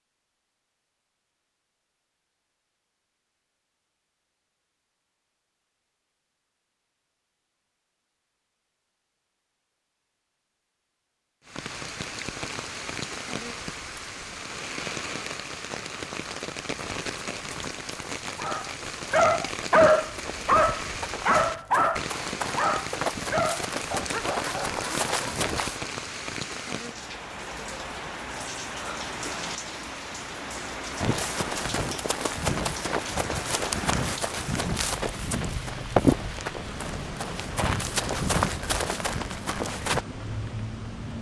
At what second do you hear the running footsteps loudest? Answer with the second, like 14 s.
36 s.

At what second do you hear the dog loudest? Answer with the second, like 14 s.
20 s.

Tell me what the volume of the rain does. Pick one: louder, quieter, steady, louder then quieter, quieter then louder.
steady.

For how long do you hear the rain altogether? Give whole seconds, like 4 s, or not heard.
30 s.